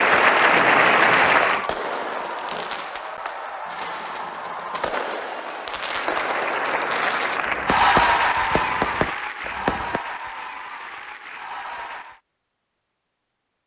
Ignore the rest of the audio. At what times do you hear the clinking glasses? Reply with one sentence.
You can't hear the clinking glasses here.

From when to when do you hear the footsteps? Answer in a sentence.
The footsteps can't be heard in this clip.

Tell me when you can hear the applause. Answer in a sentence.
You can hear the applause from 0.0 to 1.6 s and from 5.7 to 12.2 s.